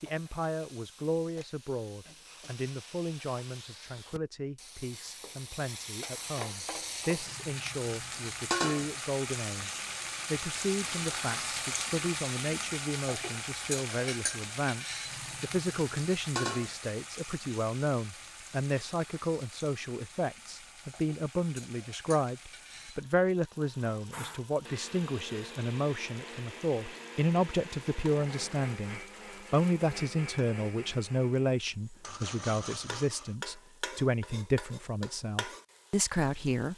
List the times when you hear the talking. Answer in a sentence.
The talking can be heard from 0.0 to 36.7 s.